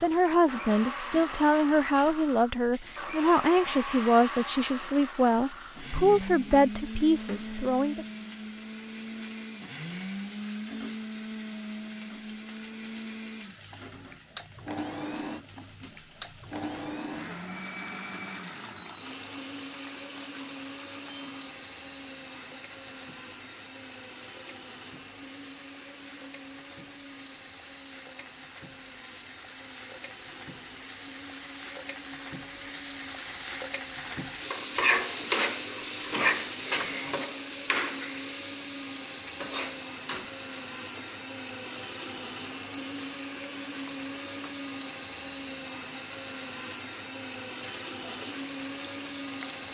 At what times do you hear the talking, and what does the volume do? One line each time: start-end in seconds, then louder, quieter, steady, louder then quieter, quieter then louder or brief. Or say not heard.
0.0-8.1 steady.